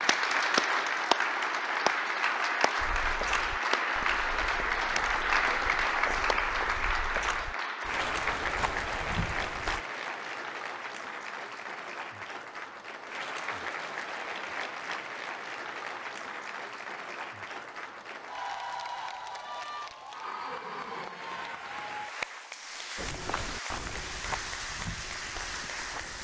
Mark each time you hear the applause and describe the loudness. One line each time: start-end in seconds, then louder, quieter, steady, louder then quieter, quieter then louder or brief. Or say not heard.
0.0-26.2 quieter.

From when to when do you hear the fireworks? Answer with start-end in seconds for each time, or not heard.
not heard.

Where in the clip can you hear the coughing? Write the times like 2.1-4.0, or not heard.
not heard.